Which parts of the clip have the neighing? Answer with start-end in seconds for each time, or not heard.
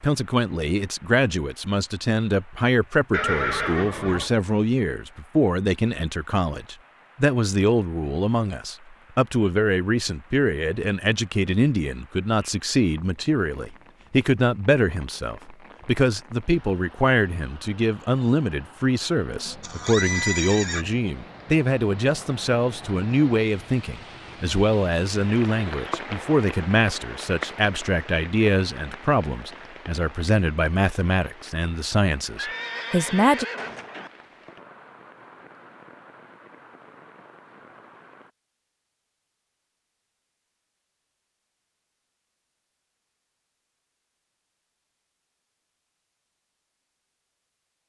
3.1-4.3, 19.6-20.9, 32.4-34.1.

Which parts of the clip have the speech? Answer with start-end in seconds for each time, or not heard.
0.0-33.5.